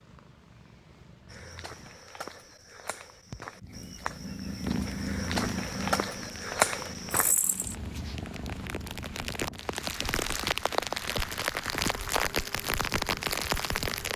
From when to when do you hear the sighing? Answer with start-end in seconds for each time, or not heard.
not heard.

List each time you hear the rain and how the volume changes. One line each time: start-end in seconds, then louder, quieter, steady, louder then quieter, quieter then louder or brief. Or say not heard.
4.5-14.1 louder.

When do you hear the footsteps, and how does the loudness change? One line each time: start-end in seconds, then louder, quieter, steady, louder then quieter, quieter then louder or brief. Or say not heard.
1.2-7.3 louder.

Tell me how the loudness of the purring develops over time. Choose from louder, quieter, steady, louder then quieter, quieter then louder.
louder then quieter.